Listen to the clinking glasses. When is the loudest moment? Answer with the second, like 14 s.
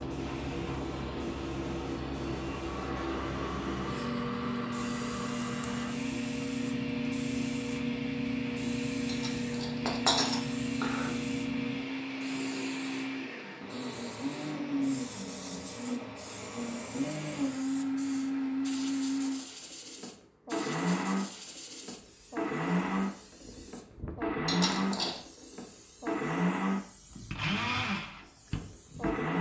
10 s.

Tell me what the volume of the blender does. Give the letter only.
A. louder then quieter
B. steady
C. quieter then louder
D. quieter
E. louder
E.